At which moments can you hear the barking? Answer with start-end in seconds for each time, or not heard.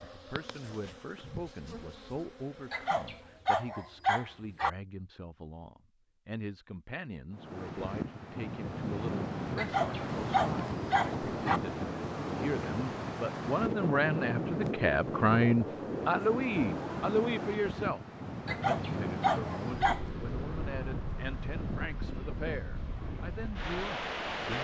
2.7-4.7, 9.6-11.6, 18.4-20.1.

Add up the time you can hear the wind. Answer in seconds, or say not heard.
17 s.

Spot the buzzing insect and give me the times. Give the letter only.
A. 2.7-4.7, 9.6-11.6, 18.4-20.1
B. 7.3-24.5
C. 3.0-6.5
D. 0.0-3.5
D.